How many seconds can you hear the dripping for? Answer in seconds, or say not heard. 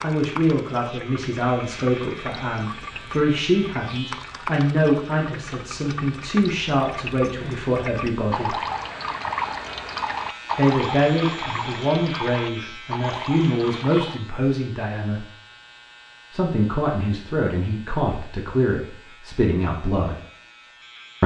14 s.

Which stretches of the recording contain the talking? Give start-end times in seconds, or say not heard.
0.0-8.6, 10.6-15.2, 16.3-20.1.